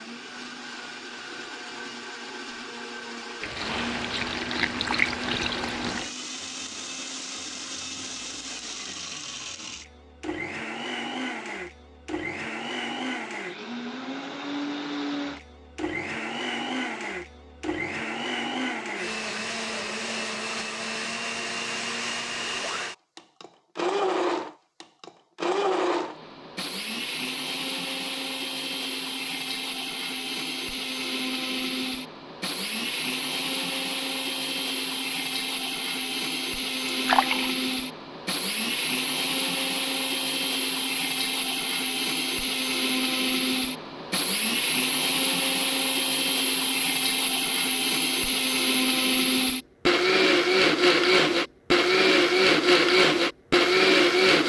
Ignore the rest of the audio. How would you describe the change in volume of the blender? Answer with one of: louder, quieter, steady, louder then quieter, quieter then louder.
louder.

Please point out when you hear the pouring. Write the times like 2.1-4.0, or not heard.
3.4-6.1, 37.0-37.5.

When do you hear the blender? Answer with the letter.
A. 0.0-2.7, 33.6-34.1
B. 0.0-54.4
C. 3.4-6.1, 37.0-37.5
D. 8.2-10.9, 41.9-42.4
B.